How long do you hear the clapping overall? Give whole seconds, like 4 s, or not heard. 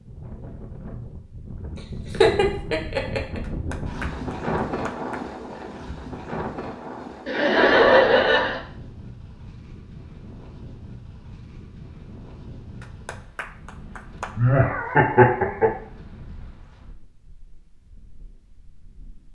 3 s.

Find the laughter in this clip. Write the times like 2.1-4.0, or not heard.
2.1-3.4, 7.2-8.6, 14.3-15.7.